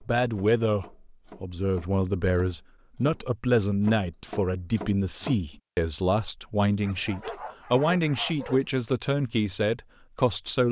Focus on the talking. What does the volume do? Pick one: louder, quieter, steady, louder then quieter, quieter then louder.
steady.